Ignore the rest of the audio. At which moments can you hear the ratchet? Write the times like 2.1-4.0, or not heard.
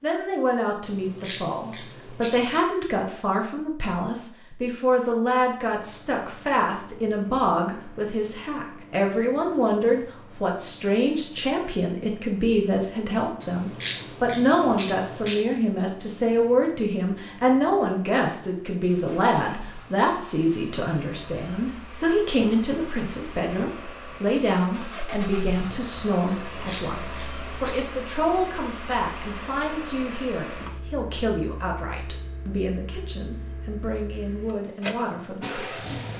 0.8-2.5, 13.4-15.4, 26.2-27.8.